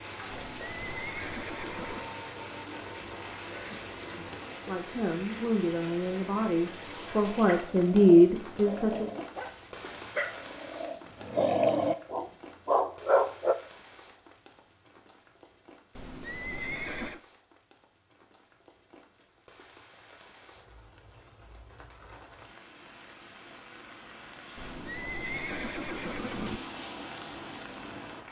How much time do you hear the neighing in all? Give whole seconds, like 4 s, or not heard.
5 s.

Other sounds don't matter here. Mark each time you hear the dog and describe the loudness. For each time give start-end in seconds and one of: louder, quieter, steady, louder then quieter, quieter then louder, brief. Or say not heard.
7.5-13.6 louder.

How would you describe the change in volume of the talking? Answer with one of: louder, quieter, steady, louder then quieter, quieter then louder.
louder.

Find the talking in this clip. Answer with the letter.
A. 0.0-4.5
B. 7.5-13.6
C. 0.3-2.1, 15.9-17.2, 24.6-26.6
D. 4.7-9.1
D.